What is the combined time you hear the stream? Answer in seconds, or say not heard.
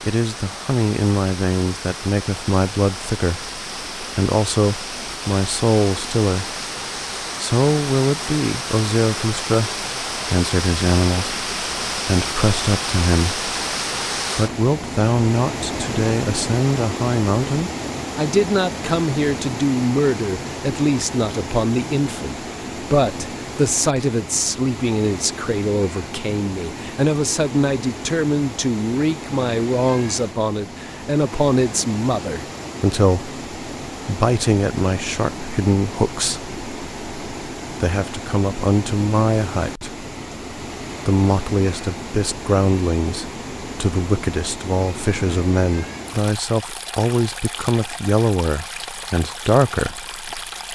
51 s.